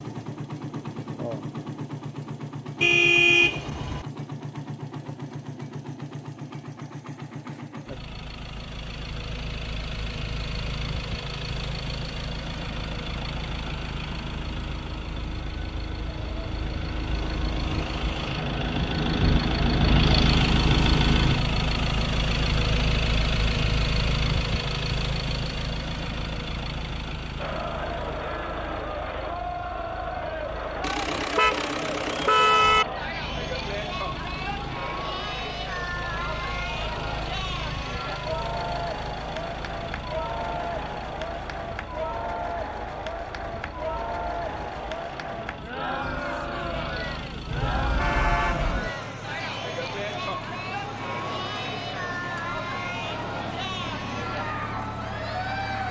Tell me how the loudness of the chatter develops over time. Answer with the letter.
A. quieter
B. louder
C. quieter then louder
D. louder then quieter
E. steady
E.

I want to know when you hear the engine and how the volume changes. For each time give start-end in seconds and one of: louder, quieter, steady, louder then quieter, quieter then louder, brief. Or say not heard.
0.0-55.8 louder then quieter.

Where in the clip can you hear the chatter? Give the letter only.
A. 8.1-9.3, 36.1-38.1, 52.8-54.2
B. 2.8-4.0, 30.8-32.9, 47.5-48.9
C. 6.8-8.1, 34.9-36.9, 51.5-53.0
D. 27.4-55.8
D.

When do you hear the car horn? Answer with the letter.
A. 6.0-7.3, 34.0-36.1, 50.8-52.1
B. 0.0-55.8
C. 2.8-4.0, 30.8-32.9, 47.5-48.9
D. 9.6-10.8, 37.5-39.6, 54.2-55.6
C.